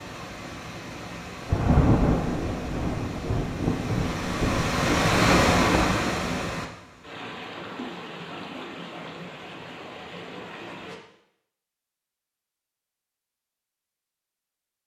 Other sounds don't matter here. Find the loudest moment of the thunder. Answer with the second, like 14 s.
2 s.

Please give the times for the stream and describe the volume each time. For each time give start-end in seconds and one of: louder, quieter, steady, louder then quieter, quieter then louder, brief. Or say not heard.
0.0-11.0 louder then quieter.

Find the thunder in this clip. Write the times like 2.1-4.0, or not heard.
1.4-6.0.